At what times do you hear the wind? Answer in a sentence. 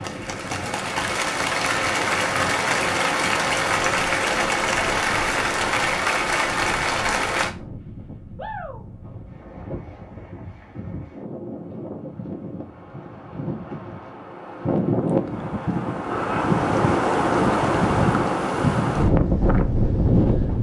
The wind can be heard from 0.0 to 20.5 s.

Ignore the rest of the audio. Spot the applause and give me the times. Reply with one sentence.
The applause can be heard from 0.0 to 7.5 s.